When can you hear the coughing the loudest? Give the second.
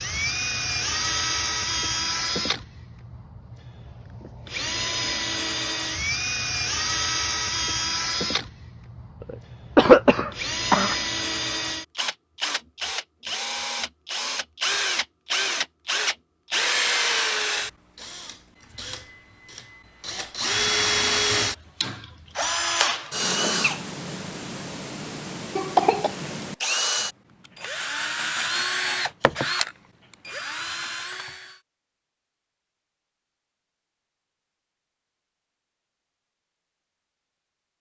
10 s.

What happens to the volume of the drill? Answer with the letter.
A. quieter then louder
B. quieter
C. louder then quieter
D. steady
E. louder
D.